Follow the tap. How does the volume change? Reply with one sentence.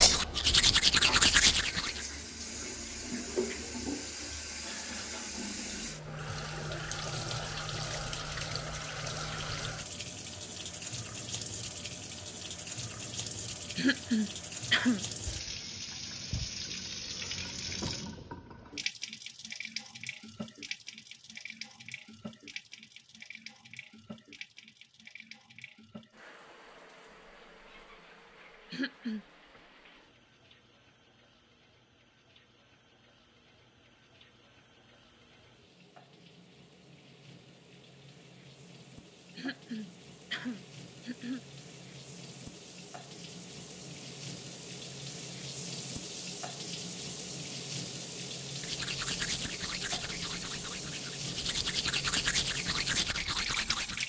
The loudness of the tap goes down, then up.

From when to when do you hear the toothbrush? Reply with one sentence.
The toothbrush can be heard from 0.0 to 2.0 s and from 48.6 to 54.0 s.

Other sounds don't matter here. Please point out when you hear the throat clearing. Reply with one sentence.
You can hear the throat clearing from 13.8 to 15.1 s, from 28.7 to 29.2 s and from 39.4 to 41.4 s.